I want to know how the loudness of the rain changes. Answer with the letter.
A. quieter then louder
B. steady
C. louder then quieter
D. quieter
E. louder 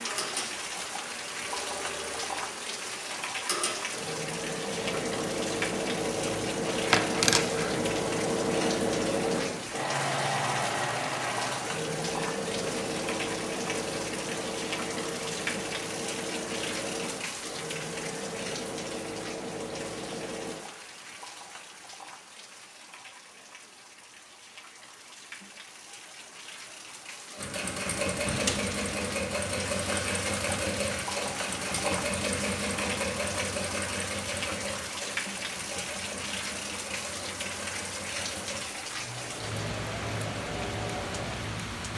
A.